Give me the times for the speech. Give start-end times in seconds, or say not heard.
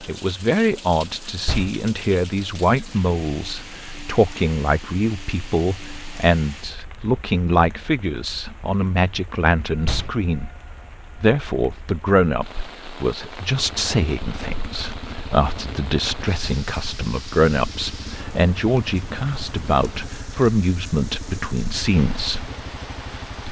0.0-10.5, 11.2-22.5.